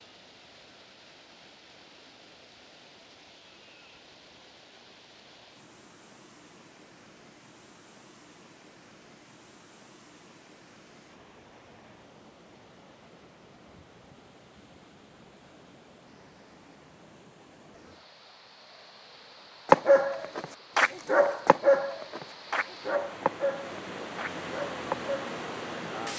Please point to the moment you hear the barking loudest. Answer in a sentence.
The loudest moment of the barking is at 20 seconds.